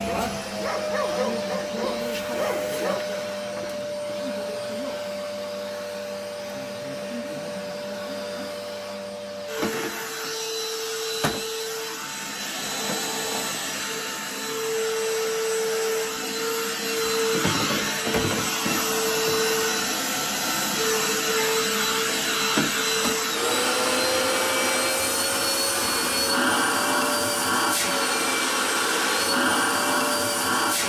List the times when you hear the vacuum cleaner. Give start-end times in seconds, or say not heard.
0.0-30.8.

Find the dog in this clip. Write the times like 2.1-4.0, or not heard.
0.0-3.0.